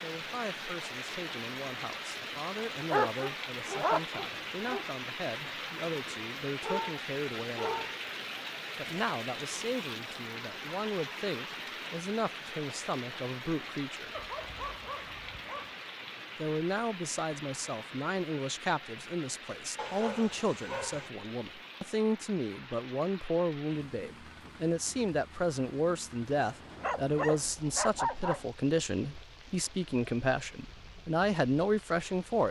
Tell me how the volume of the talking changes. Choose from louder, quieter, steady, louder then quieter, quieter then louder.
louder.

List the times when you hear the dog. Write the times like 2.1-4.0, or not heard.
2.9-4.8, 6.6-8.0, 14.1-15.8, 19.8-21.1, 26.4-28.4.